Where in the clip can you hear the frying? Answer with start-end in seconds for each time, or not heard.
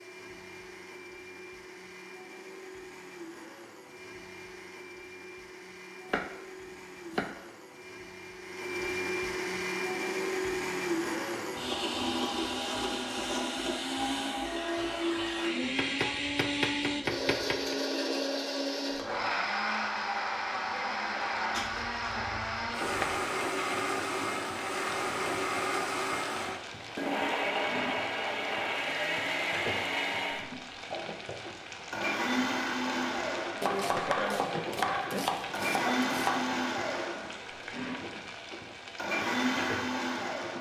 22.6-40.5.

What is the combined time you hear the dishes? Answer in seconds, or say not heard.
not heard.